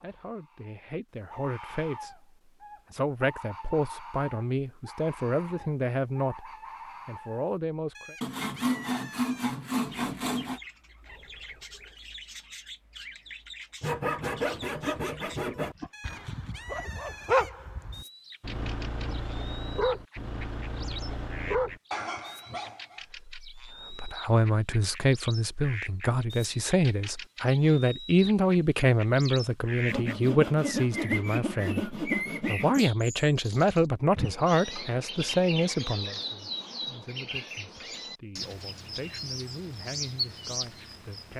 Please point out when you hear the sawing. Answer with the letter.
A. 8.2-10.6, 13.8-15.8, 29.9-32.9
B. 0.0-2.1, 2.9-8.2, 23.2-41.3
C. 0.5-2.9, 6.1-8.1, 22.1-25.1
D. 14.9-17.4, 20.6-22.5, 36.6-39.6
A.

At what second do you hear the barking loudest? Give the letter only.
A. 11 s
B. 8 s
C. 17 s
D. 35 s
C.